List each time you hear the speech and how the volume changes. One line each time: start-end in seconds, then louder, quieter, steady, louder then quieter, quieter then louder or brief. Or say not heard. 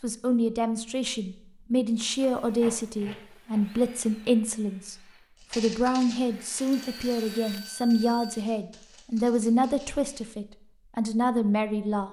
0.0-12.0 steady.